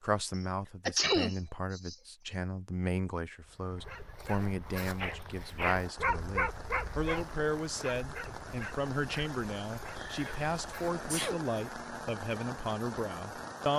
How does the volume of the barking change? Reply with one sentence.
The loudness of the barking goes up, then down.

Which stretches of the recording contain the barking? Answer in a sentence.
You can hear the barking from 3.5 to 11.0 s.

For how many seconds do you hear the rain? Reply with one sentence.
The rain can be heard for 8 seconds in total.